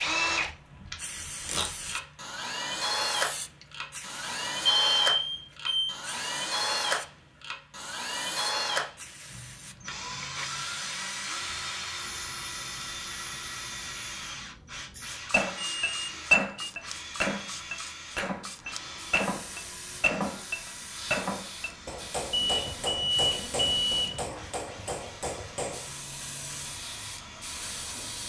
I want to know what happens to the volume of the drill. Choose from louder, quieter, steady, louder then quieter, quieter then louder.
quieter.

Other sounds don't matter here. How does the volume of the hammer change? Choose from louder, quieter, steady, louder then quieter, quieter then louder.
quieter.